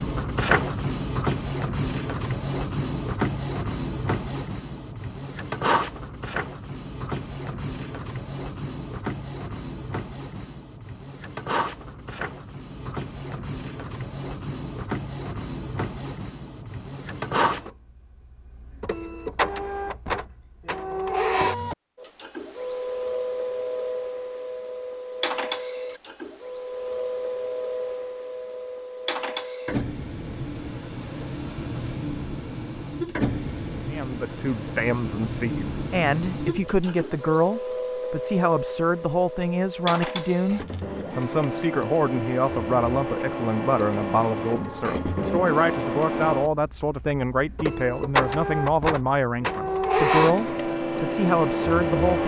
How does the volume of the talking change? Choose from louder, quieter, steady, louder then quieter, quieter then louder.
steady.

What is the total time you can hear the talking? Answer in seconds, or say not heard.
18 s.